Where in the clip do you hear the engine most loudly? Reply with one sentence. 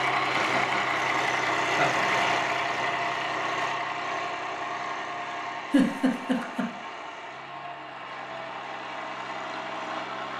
The loudest moment of the engine is at 2 seconds.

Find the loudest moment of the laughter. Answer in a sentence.
The loudest moment of the laughter is at 6 seconds.